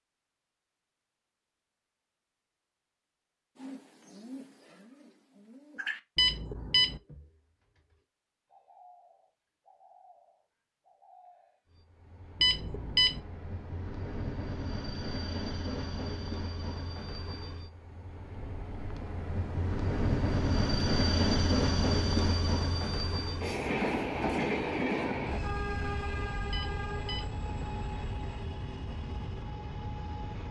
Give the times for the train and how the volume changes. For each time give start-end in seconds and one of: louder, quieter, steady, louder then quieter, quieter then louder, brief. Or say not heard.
11.7-30.4 louder then quieter.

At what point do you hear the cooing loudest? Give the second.
6 s.